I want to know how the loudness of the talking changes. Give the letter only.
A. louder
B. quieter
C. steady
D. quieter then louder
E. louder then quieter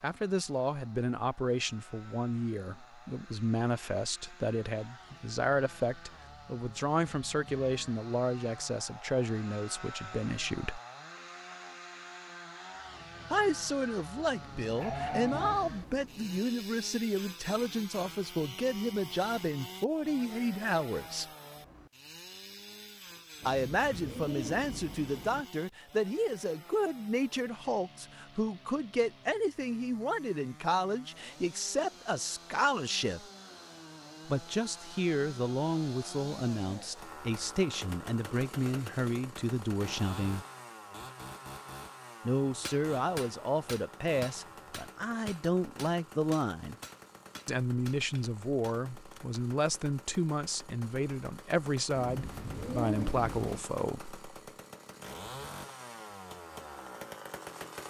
C.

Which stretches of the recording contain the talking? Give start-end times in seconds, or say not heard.
0.0-10.8, 13.3-21.2, 23.4-33.2, 34.2-40.5, 42.2-46.8, 47.5-54.1.